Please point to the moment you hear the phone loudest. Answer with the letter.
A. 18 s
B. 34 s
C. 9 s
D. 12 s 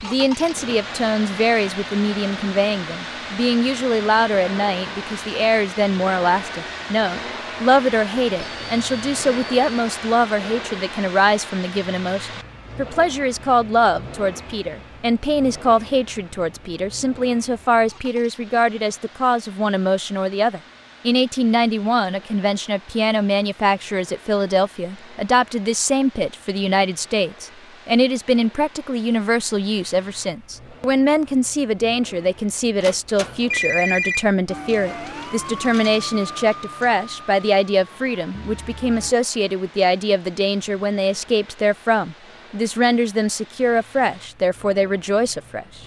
B.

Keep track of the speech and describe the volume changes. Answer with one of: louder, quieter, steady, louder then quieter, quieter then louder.
steady.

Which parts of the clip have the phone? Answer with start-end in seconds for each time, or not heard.
8.3-9.6, 32.8-34.3.